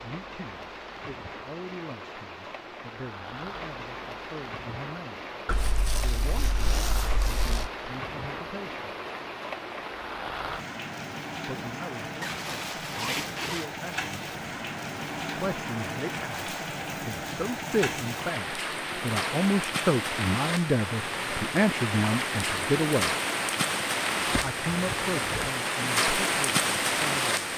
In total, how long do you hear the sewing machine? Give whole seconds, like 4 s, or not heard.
not heard.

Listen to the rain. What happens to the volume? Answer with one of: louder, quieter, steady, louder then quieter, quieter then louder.
louder.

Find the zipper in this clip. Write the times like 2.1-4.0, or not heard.
5.5-7.7, 12.2-13.7, 24.2-25.5.